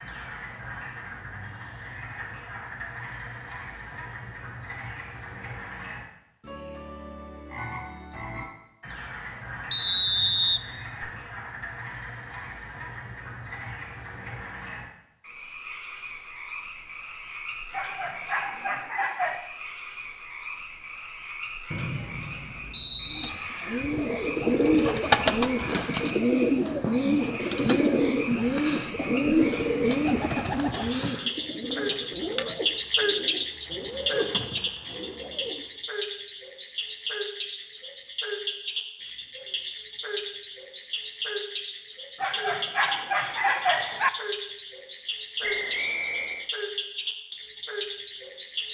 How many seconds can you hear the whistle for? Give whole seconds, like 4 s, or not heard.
4 s.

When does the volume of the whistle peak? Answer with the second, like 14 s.
10 s.